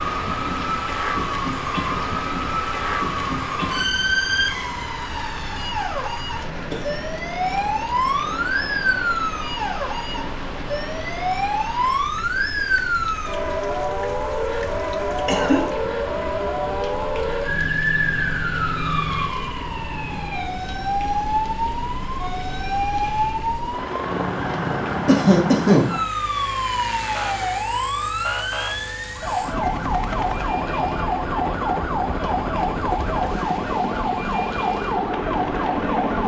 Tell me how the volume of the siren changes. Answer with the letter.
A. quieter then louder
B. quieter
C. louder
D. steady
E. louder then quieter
D.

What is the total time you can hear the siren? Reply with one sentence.
The siren can be heard for 36 seconds in total.